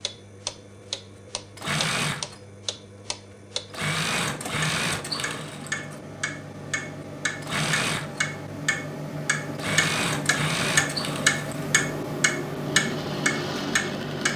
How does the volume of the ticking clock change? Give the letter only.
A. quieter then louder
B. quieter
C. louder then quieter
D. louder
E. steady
D.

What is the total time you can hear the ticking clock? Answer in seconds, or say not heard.
14 s.